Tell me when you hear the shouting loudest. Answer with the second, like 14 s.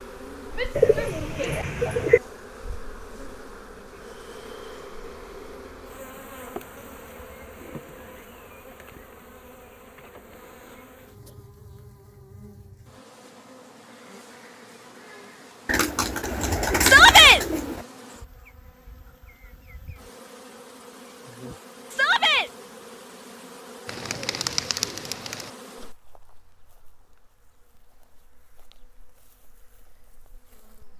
17 s.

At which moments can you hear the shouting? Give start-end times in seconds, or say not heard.
0.6-1.6, 16.8-17.4, 21.9-22.5.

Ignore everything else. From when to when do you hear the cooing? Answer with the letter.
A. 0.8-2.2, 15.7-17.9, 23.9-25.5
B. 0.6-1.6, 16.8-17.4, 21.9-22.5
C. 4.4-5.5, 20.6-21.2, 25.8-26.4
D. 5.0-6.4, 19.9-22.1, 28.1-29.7
A.